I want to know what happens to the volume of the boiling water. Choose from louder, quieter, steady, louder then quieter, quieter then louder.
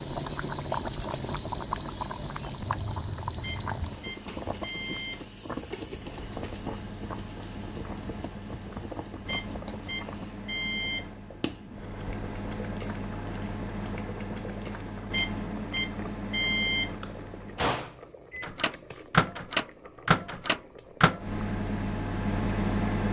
quieter.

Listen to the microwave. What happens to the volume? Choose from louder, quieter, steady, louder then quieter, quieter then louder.
louder.